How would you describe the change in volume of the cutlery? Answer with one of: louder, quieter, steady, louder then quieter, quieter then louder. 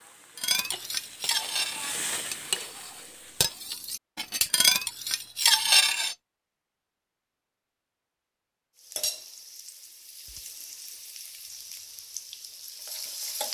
quieter then louder.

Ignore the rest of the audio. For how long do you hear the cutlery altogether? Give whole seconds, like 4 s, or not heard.
6 s.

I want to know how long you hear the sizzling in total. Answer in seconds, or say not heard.
8 s.